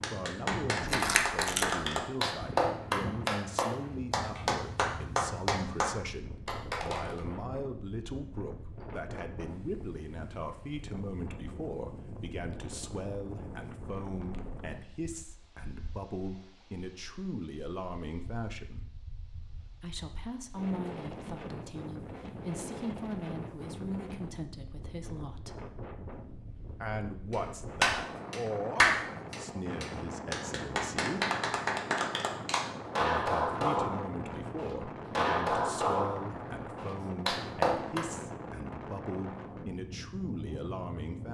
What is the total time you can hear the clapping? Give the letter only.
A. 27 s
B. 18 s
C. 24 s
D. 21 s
B.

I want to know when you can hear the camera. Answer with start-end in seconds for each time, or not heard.
0.8-1.9.